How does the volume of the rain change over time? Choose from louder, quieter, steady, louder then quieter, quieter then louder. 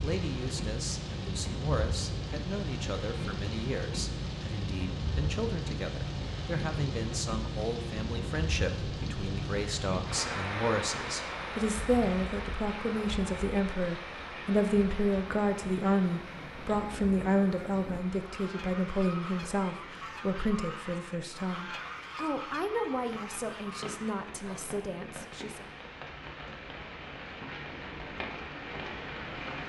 quieter then louder.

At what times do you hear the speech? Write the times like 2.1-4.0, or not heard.
0.0-25.7.